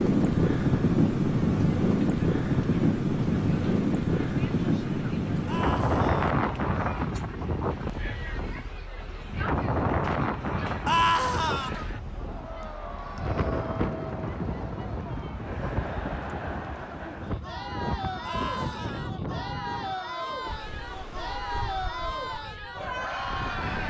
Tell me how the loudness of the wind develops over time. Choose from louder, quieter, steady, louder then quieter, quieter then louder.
quieter.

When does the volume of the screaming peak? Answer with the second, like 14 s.
11 s.